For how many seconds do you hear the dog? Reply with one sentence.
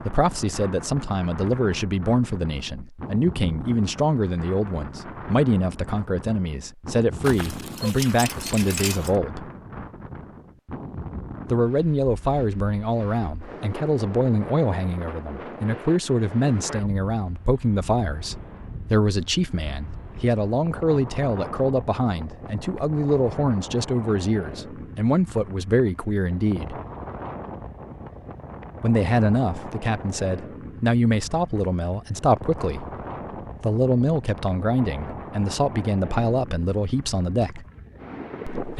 You can hear the dog for 2 seconds altogether.